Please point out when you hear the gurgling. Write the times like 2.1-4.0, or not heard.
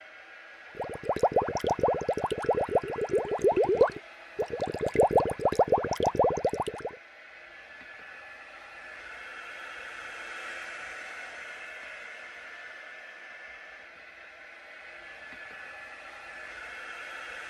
0.8-6.9.